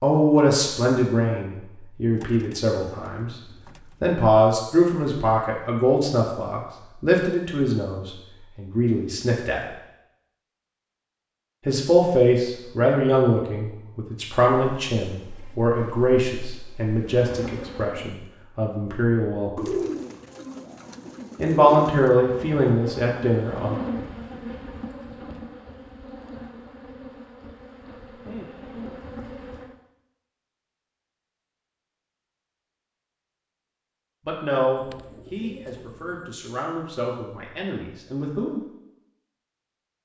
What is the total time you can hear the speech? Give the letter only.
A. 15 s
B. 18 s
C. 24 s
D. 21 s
C.